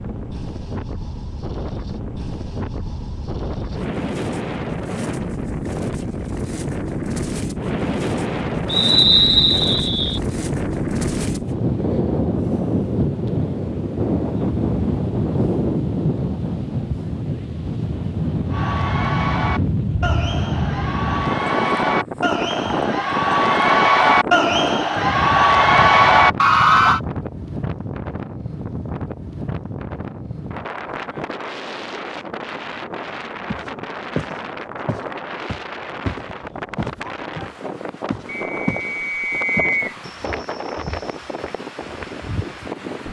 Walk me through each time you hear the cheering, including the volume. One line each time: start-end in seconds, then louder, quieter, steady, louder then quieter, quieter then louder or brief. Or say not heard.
18.5-27.0 louder.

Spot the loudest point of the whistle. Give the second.
9 s.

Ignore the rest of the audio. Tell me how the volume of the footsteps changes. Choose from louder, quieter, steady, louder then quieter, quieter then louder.
quieter.